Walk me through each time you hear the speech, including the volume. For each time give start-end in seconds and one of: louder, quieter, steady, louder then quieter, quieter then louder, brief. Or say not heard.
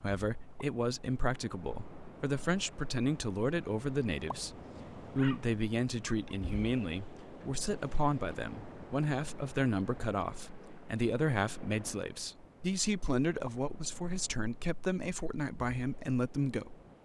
0.0-16.8 steady.